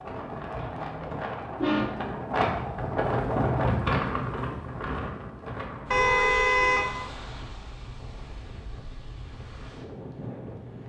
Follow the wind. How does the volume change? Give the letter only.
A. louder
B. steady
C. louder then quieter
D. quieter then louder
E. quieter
C.